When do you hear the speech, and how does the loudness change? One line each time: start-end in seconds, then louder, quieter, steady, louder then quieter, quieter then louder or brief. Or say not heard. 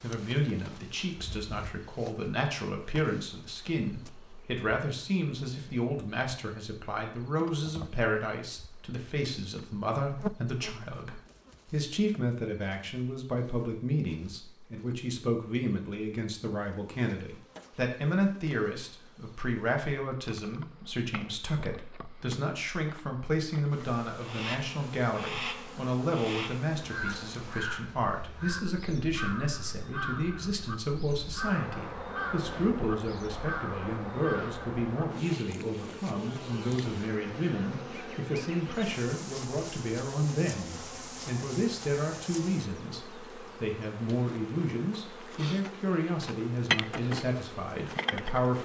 0.0-48.6 steady.